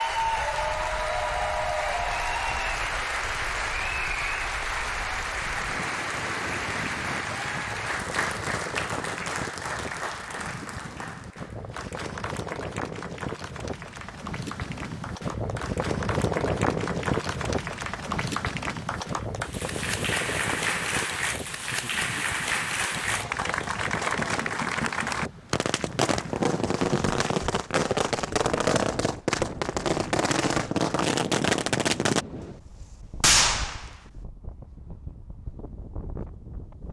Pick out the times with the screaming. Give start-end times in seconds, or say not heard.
not heard.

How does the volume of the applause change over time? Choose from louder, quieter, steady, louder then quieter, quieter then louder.
quieter then louder.